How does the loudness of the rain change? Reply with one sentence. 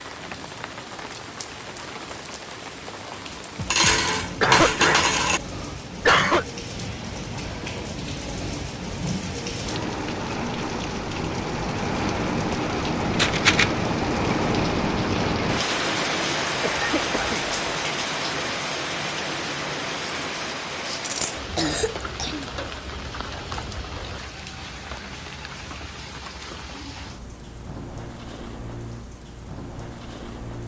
The volume of the rain goes up, then down.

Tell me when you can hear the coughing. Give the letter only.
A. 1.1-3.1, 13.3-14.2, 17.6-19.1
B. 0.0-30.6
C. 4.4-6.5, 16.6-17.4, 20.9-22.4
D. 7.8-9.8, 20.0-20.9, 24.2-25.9
C.